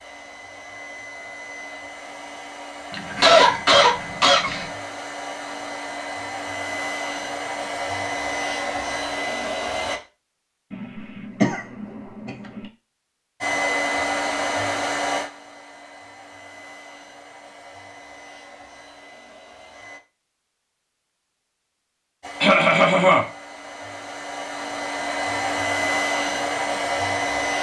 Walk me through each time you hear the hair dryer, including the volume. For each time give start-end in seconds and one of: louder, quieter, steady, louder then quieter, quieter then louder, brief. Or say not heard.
0.0-10.0 louder
13.4-20.0 quieter
22.2-27.5 louder.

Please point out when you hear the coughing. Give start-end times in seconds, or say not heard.
2.9-4.7, 10.7-12.7, 22.4-23.2.